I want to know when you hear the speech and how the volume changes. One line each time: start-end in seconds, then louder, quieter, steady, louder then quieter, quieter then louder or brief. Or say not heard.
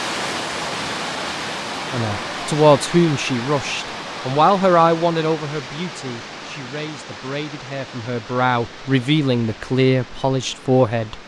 1.9-11.2 quieter then louder.